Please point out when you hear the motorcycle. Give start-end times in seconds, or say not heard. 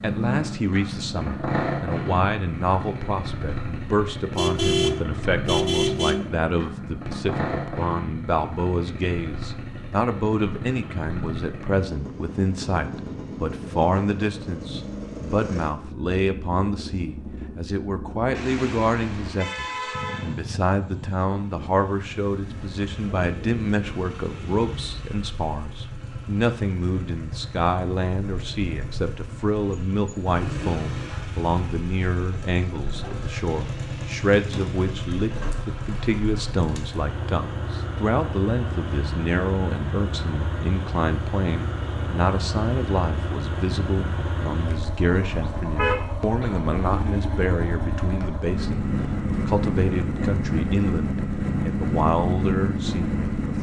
0.0-53.5.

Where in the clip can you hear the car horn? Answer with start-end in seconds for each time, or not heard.
4.3-6.3, 18.4-20.4, 45.2-46.4.